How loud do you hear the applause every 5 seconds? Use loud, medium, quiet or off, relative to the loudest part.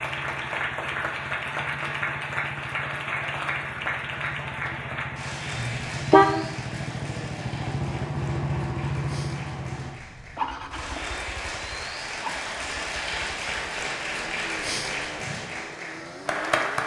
loud, medium, loud, loud.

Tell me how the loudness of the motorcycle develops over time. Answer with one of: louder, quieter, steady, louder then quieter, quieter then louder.
louder then quieter.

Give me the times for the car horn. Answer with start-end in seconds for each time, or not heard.
5.5-6.5.